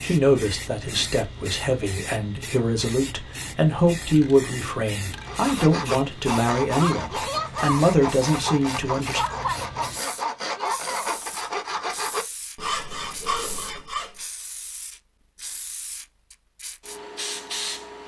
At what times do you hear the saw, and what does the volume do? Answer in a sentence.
The saw can be heard from 5.2 to 14.2 s, at a steady volume.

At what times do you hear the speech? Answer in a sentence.
You can hear the speech from 0.0 to 9.2 s.